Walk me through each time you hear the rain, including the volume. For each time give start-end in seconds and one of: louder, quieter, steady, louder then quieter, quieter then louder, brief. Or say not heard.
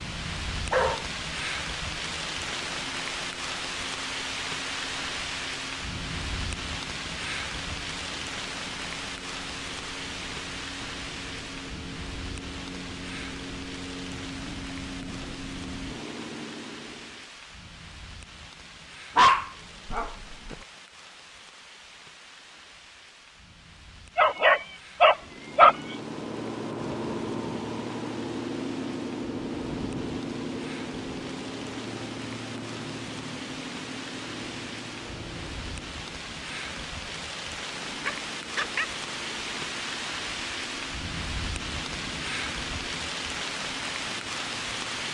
0.0-45.1 quieter then louder.